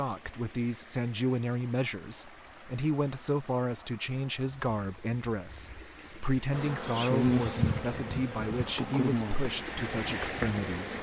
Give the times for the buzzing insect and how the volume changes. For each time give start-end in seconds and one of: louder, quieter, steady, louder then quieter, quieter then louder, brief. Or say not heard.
6.5-10.9 quieter.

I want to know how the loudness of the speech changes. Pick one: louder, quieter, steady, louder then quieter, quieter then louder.
steady.